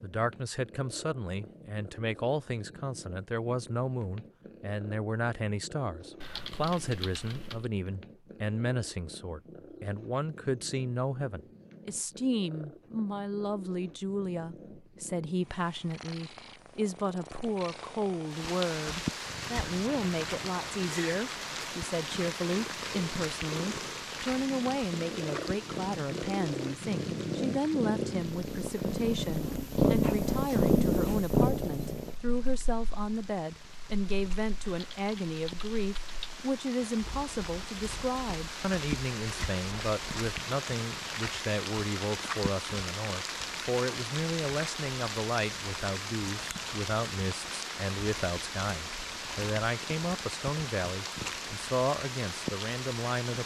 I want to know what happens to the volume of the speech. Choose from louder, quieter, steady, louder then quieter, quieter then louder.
steady.